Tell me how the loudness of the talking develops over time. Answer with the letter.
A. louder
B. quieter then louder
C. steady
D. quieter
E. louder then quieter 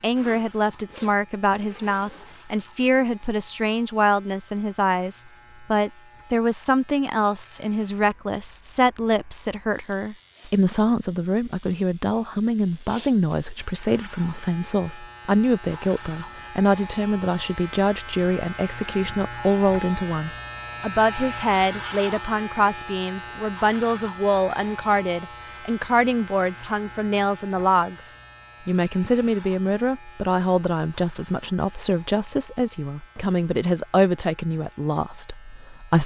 C.